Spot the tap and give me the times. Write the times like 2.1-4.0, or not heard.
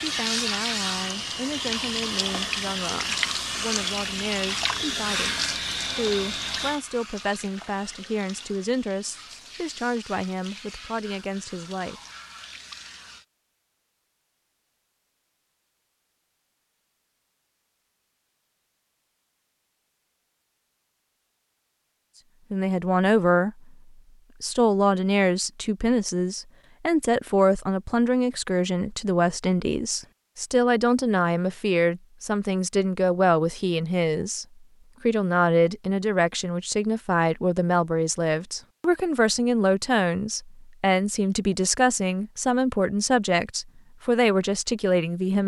0.0-13.2.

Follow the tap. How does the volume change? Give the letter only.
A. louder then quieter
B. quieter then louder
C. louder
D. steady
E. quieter
E.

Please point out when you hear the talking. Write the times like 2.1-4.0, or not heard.
0.0-12.0, 22.5-23.6, 24.4-34.5, 35.0-45.4.